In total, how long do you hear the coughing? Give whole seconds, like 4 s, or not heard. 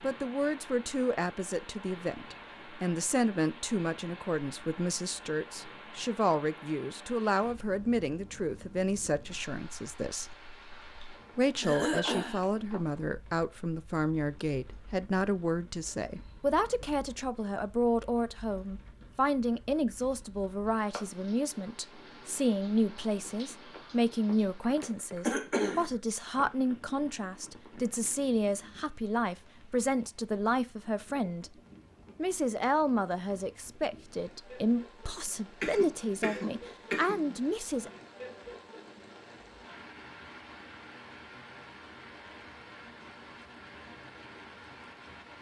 4 s.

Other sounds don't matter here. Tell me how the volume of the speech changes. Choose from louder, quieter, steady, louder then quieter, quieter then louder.
steady.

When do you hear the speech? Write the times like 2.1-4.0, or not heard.
0.0-10.3, 11.3-31.5, 32.1-37.9.